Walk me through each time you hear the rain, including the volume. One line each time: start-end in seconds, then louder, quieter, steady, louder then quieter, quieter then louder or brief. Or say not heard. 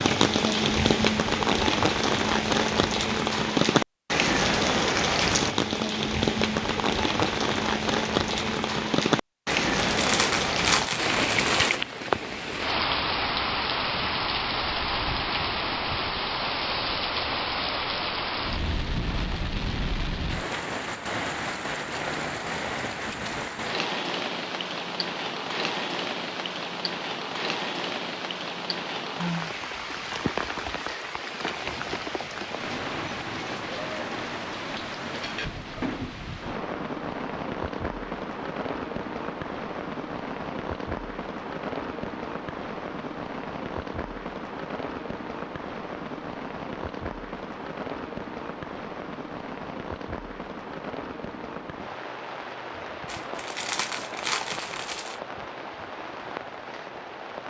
0.0-57.4 quieter.